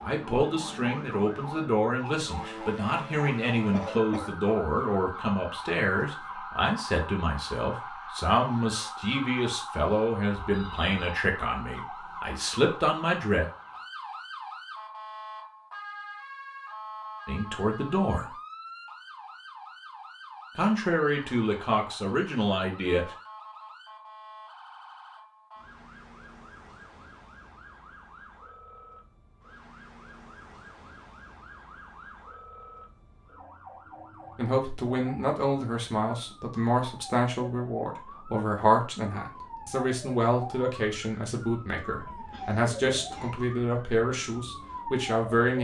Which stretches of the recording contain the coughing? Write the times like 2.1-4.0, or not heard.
3.7-4.3, 42.3-43.4.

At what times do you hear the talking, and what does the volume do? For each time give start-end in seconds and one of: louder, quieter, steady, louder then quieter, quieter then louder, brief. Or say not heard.
0.0-13.4 steady
17.2-18.3 brief
20.6-23.1 brief
34.4-45.5 steady.